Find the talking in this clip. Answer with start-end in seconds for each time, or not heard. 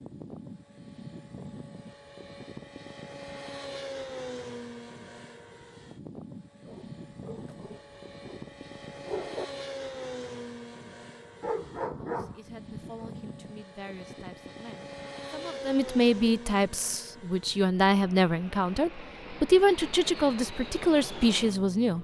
12.0-22.0.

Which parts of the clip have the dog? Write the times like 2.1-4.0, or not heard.
6.7-9.4, 11.4-13.1.